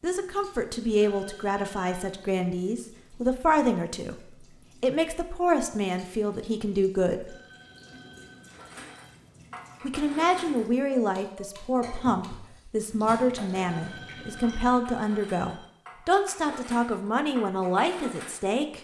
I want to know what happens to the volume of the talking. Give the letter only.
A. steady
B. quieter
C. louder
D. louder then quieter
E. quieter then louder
A.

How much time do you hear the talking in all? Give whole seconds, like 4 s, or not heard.
16 s.